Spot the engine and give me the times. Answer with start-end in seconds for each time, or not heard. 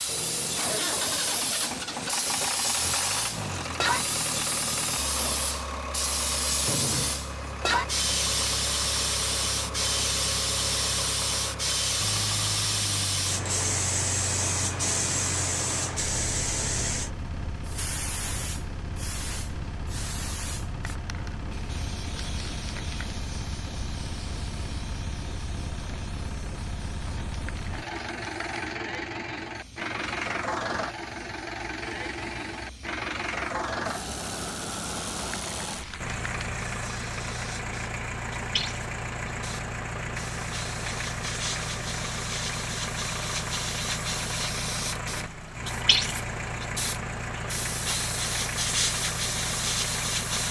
0.0-50.4.